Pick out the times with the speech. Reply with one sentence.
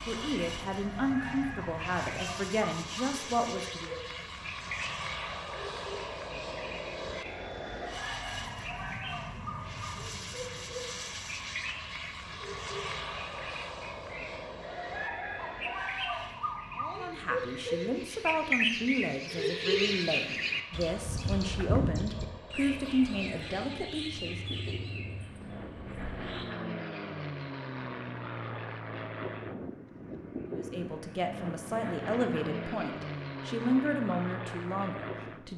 You can hear the speech from 0.1 to 3.9 s, from 16.8 to 24.4 s and from 30.5 to 35.5 s.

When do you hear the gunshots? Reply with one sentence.
You can't hear the gunshots here.